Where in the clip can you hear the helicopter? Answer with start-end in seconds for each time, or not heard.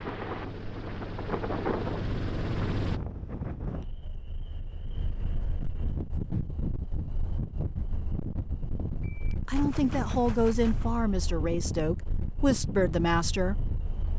0.0-3.0.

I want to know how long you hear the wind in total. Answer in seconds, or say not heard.
14 s.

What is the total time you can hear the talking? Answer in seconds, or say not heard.
4 s.